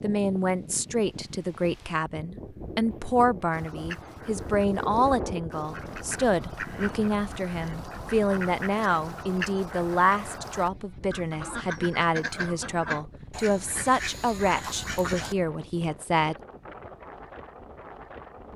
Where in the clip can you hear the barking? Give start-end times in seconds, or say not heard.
not heard.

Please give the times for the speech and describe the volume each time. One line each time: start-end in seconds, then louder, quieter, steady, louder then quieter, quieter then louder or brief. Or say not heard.
0.0-16.4 steady.